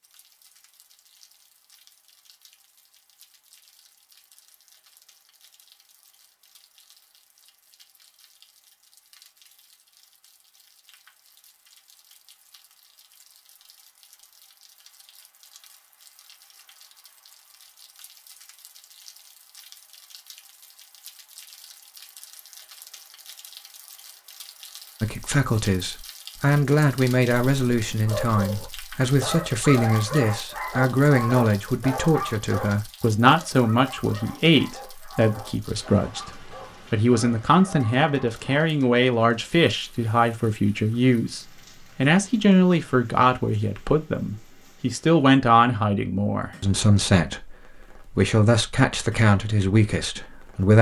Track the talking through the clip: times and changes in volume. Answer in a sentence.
The talking can be heard from 25.0 to 50.7 s, at a steady volume.